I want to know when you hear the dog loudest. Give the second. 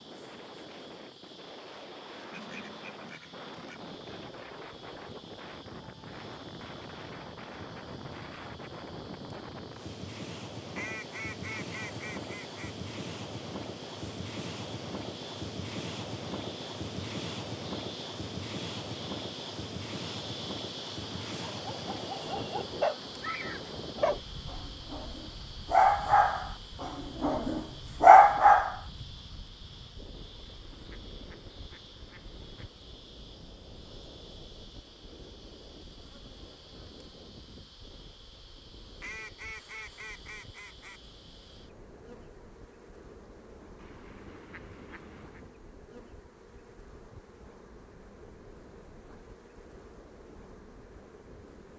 28 s.